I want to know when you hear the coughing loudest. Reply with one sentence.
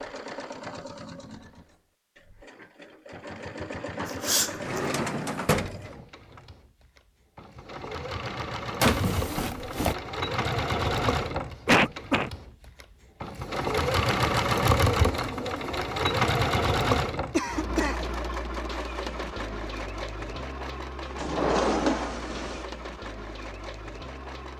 The loudest moment of the coughing is at 12 seconds.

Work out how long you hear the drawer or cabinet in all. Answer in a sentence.
You can hear the drawer or cabinet for 4 seconds altogether.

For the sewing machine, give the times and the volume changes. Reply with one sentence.
You can hear the sewing machine from 0.0 to 24.5 s, getting louder then quieter.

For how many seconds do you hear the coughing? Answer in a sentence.
The coughing can be heard for 2 seconds in total.